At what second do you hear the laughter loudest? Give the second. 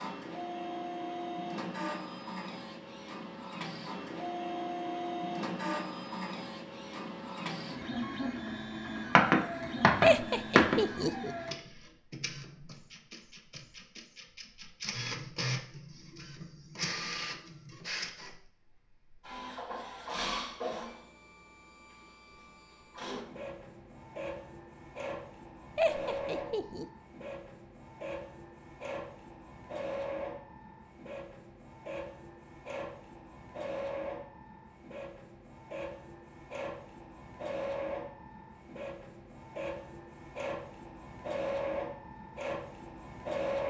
10 s.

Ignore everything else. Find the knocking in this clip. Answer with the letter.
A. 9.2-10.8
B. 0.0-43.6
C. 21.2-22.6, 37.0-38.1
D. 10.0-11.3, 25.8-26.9
A.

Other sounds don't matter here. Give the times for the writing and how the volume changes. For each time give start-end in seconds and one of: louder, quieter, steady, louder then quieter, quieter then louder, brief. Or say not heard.
not heard.